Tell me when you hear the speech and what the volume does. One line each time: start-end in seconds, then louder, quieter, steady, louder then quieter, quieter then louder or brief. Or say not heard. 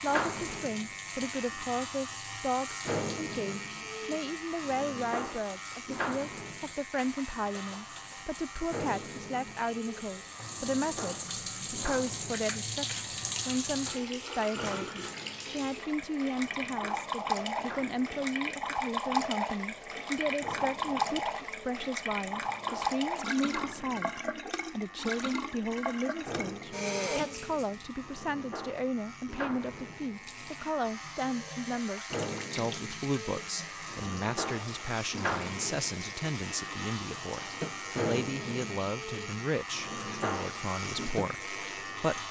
0.0-42.2 steady.